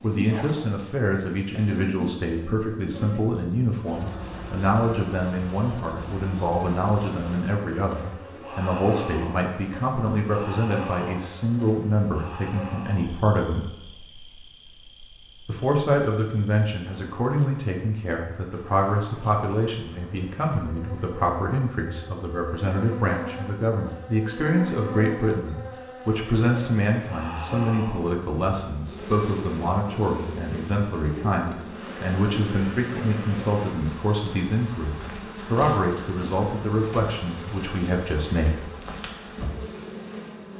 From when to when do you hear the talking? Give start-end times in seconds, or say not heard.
0.0-13.7, 15.4-38.6.